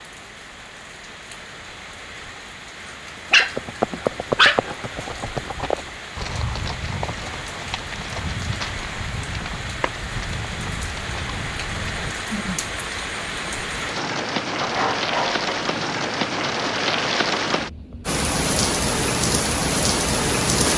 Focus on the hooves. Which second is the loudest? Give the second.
4 s.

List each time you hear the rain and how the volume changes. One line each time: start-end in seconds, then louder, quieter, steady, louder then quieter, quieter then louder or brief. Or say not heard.
0.0-20.7 louder.